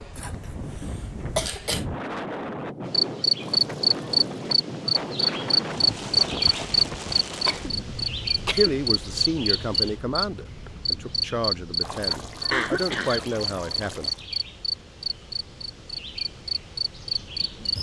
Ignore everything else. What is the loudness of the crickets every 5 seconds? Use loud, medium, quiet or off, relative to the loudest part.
loud, loud, medium, medium.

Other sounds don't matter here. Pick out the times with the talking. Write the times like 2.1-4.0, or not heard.
8.5-14.1.